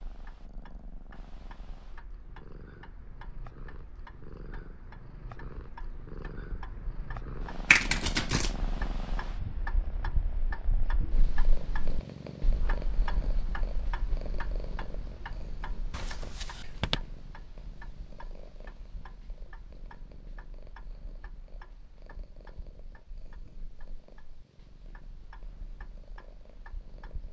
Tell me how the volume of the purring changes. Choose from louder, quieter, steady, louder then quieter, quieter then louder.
louder then quieter.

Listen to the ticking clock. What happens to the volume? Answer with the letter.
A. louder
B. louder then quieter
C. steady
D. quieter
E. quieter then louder
B.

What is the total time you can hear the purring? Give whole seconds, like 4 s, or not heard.
27 s.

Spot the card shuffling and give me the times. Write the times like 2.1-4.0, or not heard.
7.7-8.6, 15.9-17.0.